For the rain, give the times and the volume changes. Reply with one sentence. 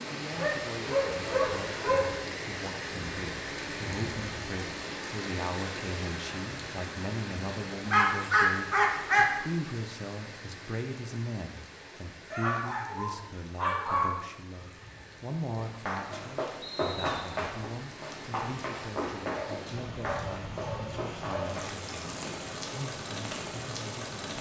You can hear the rain from 0.0 to 24.3 s, getting quieter then louder.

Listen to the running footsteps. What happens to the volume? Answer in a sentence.
The loudness of the running footsteps goes down.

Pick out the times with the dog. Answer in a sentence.
The dog can be heard from 0.3 to 2.0 s, from 7.9 to 9.3 s, from 12.3 to 14.2 s and from 19.2 to 21.6 s.